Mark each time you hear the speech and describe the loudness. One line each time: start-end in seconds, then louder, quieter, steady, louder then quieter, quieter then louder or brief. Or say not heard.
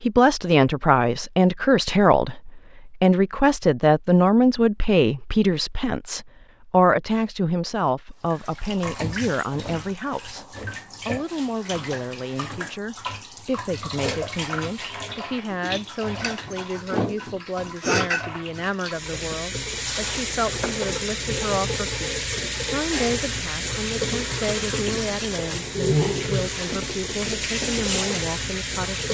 0.0-29.0 quieter.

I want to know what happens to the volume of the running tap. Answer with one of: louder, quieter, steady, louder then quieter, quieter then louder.
louder.